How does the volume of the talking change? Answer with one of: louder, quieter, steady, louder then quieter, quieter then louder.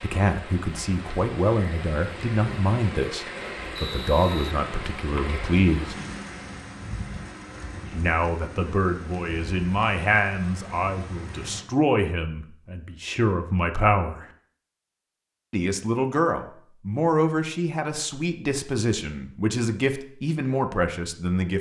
steady.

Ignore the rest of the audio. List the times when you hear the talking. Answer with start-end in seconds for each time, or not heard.
0.0-6.0, 7.9-14.2, 15.5-21.5.